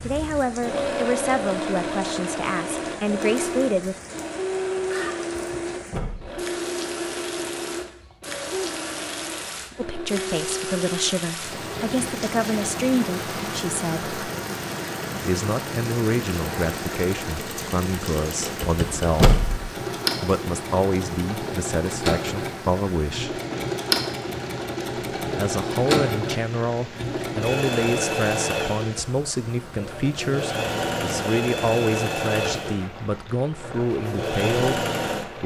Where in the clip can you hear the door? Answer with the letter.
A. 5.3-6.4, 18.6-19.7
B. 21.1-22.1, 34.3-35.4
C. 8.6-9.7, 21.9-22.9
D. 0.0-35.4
A.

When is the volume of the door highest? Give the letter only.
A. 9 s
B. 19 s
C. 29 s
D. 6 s
B.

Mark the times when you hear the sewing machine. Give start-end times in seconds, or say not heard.
0.0-35.4.